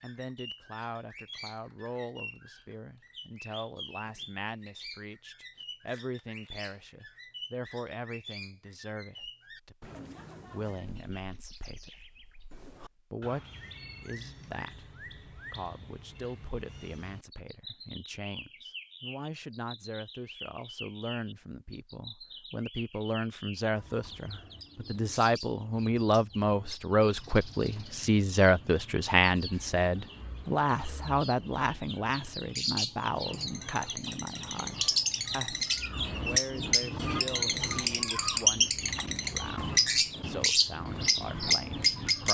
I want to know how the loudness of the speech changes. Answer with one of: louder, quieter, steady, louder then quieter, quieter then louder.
louder then quieter.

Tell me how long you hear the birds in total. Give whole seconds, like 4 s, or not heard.
42 s.